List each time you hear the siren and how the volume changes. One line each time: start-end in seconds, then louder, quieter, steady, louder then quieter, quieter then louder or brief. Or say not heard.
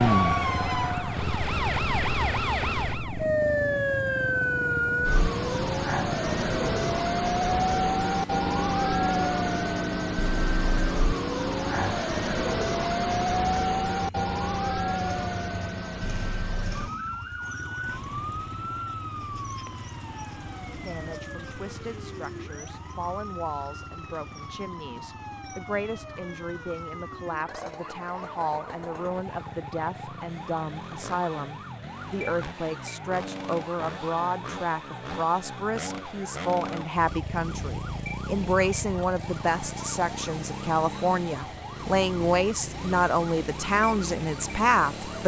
0.0-45.2 quieter.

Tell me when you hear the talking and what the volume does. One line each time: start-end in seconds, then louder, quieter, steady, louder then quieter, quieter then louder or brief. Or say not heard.
20.6-45.2 louder.